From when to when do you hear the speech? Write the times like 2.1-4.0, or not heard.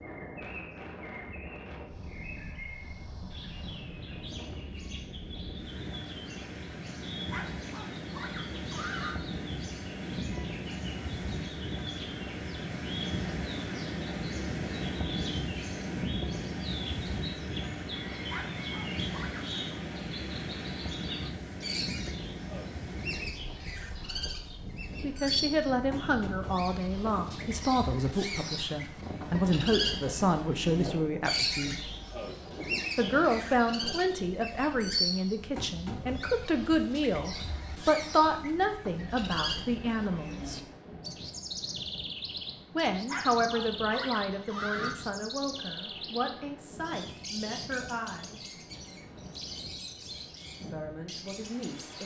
25.0-31.9, 33.0-40.6, 42.8-48.5, 50.7-52.0.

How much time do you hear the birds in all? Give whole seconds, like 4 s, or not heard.
52 s.